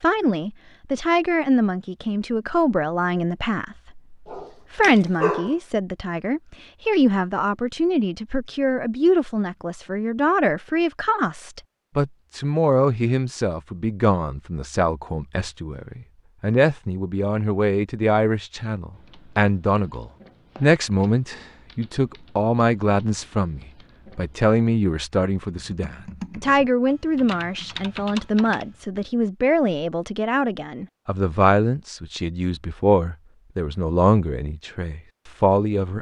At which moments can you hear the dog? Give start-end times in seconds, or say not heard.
4.2-5.5.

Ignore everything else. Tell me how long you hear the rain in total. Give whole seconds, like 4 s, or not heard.
not heard.